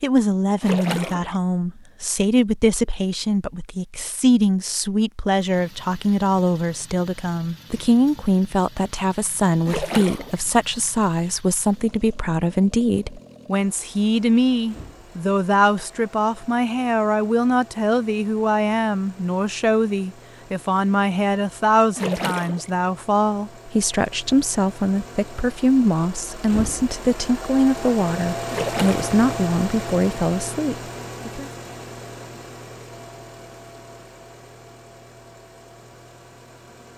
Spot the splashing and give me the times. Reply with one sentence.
You can hear the splashing from 0.6 to 1.4 s, from 9.7 to 10.4 s, from 21.9 to 22.7 s and from 28.5 to 29.1 s.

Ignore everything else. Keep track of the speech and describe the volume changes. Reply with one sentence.
The volume of the speech stays about the same.